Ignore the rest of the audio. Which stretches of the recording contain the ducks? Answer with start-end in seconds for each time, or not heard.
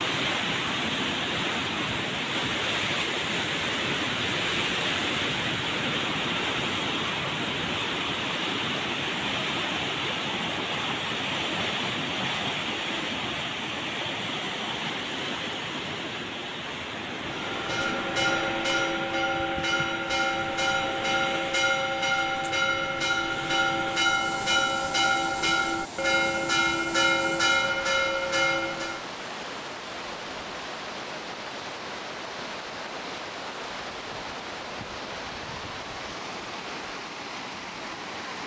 not heard.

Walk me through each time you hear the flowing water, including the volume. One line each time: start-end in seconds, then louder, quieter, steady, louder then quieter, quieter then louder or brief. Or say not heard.
0.0-38.4 quieter.